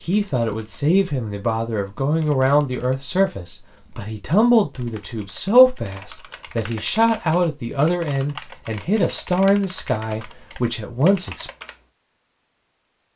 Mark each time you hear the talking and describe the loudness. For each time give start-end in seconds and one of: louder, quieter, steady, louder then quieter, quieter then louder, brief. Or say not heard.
0.0-11.5 steady.